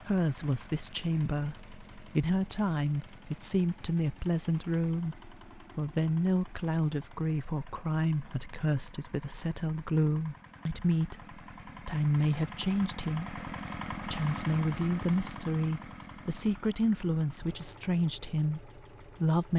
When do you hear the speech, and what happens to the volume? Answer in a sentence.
The speech can be heard from 0.1 to 19.5 s, at a steady volume.